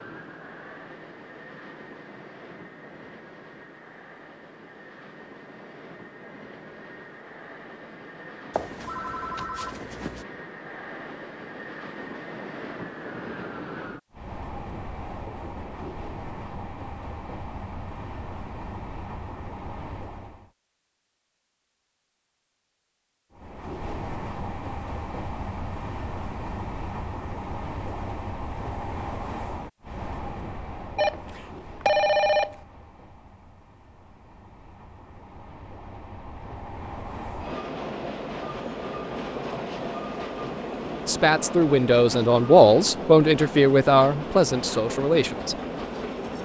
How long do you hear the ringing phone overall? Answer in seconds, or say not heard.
3 s.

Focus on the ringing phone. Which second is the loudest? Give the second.
32 s.